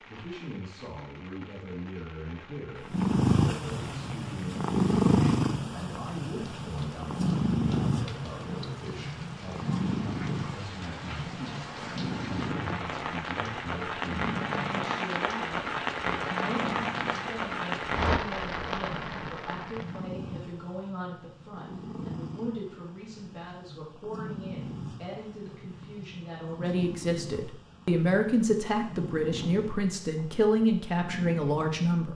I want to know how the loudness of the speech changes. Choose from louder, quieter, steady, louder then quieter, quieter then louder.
louder.